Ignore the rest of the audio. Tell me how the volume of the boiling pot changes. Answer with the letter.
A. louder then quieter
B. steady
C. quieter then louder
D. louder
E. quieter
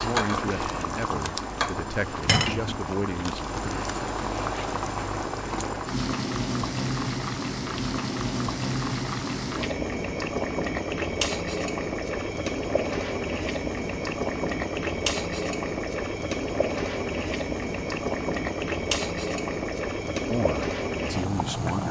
B.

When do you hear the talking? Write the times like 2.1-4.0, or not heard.
0.0-3.5, 20.3-21.8.